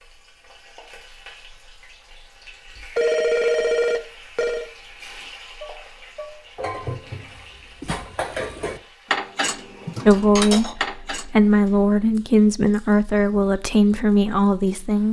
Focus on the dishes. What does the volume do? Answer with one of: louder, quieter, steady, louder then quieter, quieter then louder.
louder.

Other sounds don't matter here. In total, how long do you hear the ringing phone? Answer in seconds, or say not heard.
2 s.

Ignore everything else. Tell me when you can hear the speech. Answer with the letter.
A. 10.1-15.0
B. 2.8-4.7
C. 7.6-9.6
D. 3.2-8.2
A.